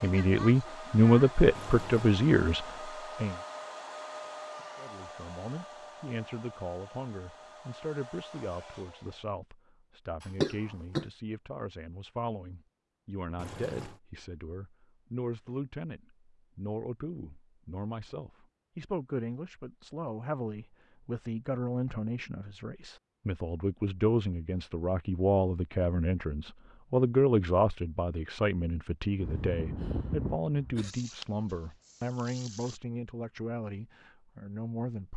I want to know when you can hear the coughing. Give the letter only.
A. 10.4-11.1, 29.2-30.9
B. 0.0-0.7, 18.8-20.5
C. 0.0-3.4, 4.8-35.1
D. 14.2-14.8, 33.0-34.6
A.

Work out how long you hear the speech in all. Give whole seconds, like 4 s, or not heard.
34 s.